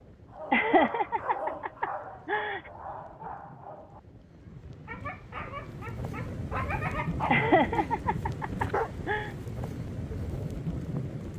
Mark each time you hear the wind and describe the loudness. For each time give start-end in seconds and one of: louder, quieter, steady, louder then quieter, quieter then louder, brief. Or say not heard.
0.0-11.3 louder.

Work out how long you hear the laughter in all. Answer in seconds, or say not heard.
4 s.